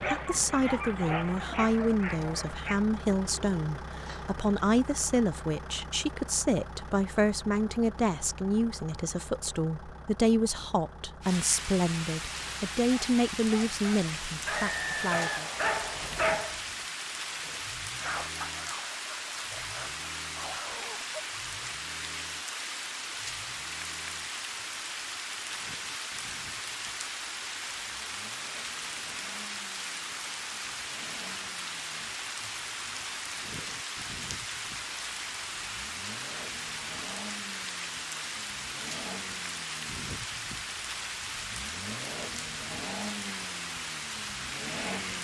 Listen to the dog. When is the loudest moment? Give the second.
16 s.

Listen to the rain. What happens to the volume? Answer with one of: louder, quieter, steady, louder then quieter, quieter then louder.
steady.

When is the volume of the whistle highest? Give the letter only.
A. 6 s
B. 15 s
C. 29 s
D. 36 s
B.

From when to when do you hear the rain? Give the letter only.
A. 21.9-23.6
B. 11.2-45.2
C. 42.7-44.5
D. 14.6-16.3
B.